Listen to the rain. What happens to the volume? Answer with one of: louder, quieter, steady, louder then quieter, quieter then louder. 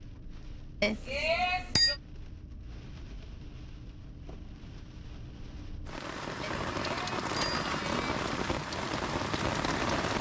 louder.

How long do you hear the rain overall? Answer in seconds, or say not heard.
10 s.